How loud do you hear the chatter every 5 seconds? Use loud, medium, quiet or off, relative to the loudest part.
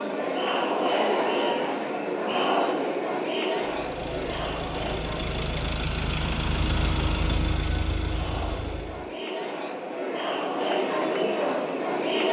loud, medium, loud.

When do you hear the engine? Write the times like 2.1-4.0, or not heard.
3.5-9.1.